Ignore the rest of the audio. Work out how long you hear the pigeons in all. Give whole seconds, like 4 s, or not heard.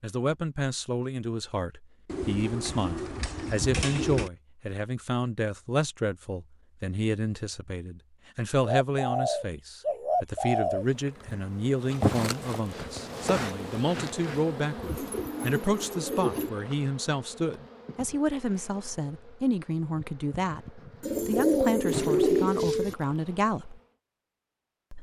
8 s.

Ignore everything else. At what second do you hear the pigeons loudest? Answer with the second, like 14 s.
22 s.